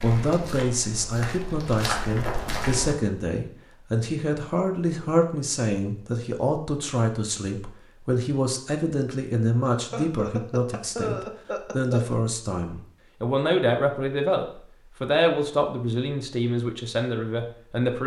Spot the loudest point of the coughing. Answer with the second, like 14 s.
11 s.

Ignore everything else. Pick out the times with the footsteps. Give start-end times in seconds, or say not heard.
0.0-3.0.